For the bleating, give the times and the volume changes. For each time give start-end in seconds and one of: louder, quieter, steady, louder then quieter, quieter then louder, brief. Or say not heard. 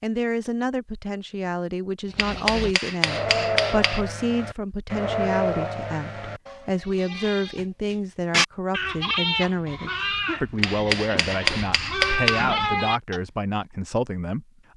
2.0-13.2 steady.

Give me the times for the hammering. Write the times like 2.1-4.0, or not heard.
2.1-4.0, 10.6-12.4.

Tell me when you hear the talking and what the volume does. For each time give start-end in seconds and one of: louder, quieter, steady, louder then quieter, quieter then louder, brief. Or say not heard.
0.0-14.4 steady.